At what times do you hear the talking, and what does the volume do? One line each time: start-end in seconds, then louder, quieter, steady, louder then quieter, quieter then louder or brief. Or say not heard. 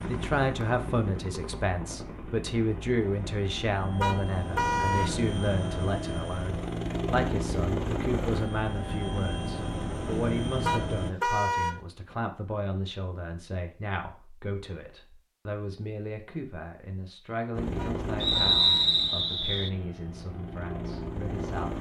0.0-21.7 quieter.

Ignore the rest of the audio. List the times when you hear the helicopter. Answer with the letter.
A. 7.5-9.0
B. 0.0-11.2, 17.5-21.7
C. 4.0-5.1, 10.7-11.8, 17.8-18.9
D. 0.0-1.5
B.